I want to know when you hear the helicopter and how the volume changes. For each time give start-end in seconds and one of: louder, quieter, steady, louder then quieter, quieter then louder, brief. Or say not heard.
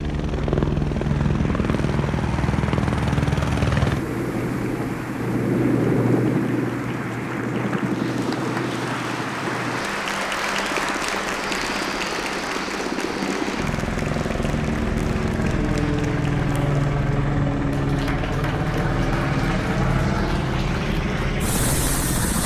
0.0-22.4 quieter then louder.